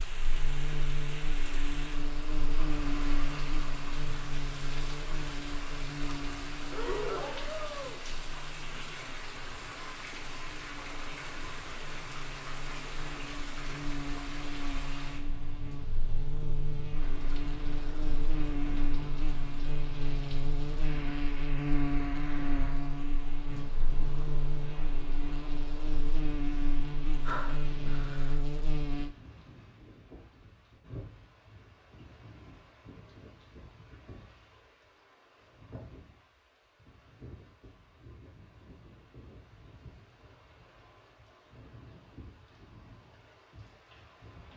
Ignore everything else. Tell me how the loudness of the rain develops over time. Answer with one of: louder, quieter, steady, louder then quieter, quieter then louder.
quieter.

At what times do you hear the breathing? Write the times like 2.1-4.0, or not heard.
6.7-8.0, 27.2-28.4.